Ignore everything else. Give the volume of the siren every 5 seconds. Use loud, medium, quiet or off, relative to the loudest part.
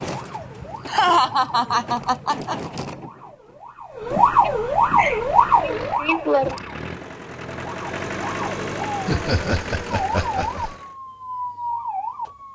loud, loud, medium.